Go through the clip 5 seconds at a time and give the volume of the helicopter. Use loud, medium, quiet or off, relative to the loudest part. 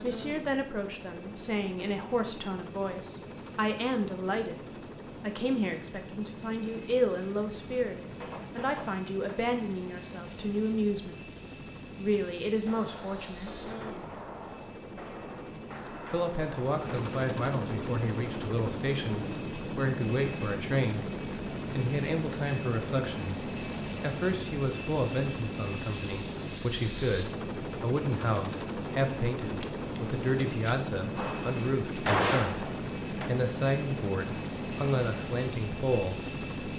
medium, medium, medium, loud, loud, loud, loud, loud.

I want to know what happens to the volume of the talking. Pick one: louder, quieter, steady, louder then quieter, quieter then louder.
steady.